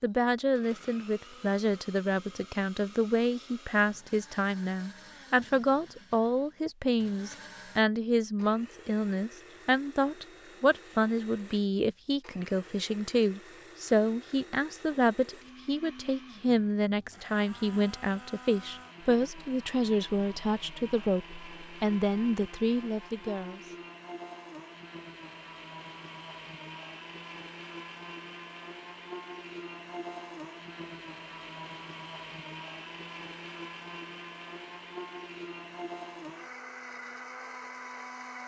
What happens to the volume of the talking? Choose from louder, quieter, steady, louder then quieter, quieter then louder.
steady.